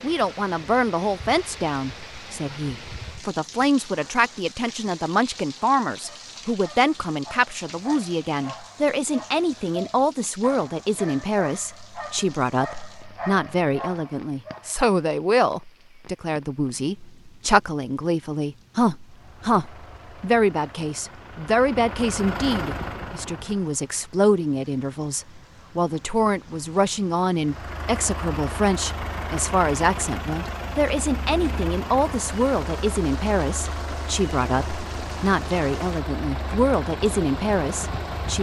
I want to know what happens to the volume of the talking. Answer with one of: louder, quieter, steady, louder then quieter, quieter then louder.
steady.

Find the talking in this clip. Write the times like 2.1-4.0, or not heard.
0.0-38.3.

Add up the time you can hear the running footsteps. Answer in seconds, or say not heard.
not heard.